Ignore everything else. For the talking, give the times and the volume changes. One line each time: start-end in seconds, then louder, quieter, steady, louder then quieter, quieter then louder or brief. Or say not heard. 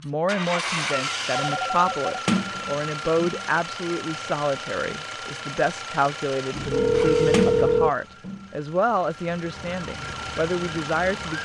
0.0-11.4 steady.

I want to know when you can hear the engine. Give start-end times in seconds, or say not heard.
0.0-11.4.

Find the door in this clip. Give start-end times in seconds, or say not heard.
2.2-3.5, 7.3-8.5.